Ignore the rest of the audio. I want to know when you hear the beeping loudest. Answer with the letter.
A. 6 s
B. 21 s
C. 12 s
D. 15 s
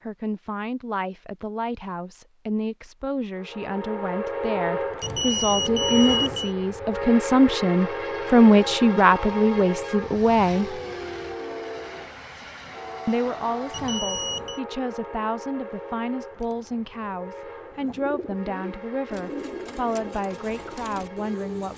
A.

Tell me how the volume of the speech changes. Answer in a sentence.
The volume of the speech goes up, then down.